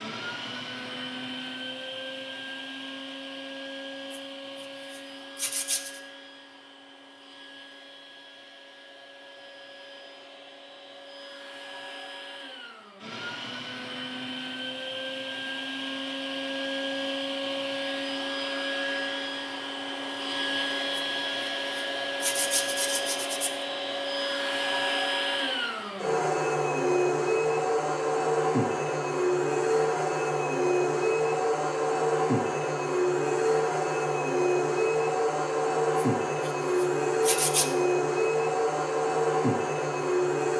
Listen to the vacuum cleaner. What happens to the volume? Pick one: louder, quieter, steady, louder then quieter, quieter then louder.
louder.